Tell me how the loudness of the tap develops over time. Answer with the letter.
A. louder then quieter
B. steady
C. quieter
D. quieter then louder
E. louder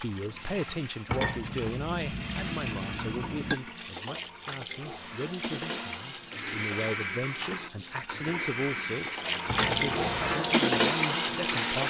E.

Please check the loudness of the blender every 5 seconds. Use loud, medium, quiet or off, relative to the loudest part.
medium, loud, loud.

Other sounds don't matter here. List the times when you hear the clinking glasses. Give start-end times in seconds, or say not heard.
1.1-3.6, 9.4-10.3.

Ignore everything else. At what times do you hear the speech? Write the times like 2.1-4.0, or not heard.
0.0-11.8.